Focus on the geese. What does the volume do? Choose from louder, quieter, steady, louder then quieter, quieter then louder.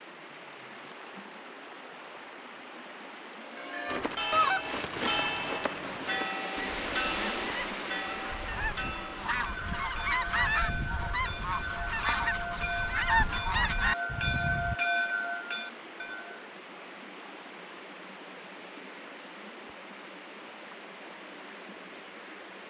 quieter then louder.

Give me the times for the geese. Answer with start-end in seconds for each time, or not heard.
3.9-14.8.